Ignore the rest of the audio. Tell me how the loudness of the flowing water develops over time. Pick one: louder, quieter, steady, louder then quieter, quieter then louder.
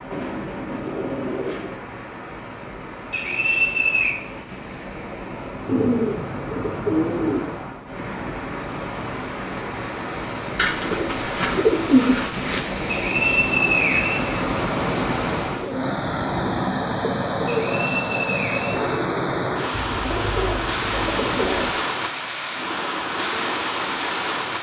louder.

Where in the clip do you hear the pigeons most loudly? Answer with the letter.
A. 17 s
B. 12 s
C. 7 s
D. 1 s
B.